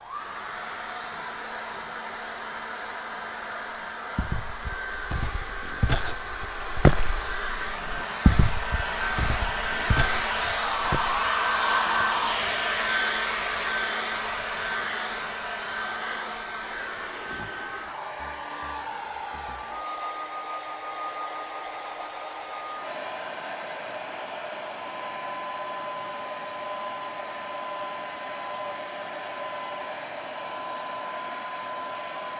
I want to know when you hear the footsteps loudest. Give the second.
7 s.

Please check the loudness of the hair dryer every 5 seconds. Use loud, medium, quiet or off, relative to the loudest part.
medium, medium, loud, medium, medium, medium, medium.